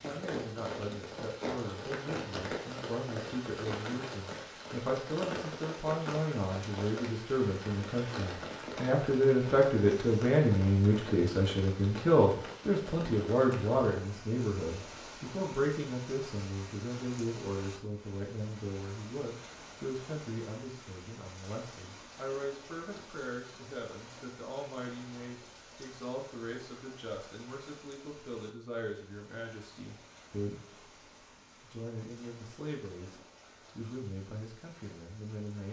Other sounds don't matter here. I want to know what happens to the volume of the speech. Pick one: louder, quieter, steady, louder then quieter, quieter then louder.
louder then quieter.